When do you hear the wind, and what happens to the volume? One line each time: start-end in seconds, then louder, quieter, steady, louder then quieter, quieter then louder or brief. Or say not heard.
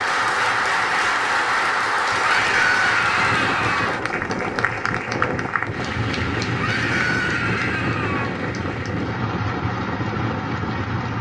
0.0-11.1 louder.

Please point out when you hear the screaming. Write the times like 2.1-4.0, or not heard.
2.2-3.9, 6.5-8.3.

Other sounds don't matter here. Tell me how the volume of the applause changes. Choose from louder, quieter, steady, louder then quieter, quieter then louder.
quieter.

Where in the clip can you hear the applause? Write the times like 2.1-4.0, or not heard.
0.0-11.1.